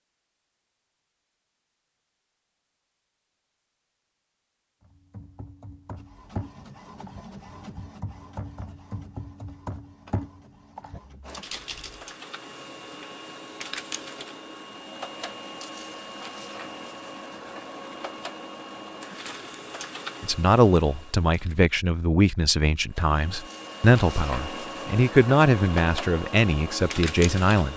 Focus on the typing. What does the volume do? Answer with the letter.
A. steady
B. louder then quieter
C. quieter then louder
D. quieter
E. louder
C.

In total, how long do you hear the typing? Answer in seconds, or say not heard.
7 s.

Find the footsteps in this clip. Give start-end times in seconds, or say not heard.
not heard.